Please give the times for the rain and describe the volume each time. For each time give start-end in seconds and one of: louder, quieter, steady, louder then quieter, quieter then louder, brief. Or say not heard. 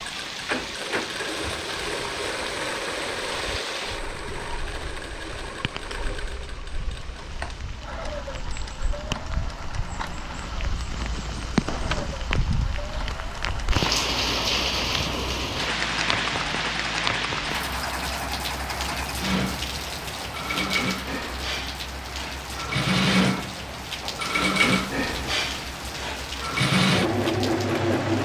0.0-28.1 louder then quieter.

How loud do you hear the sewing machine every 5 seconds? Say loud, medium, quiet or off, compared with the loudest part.
medium, quiet, quiet, medium, loud, loud.